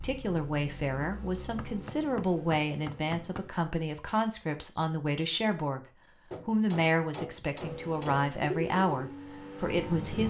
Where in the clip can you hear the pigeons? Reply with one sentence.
You can hear the pigeons from 8.3 to 10.2 s.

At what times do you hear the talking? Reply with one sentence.
You can hear the talking from 0.0 to 5.8 s and from 6.5 to 10.2 s.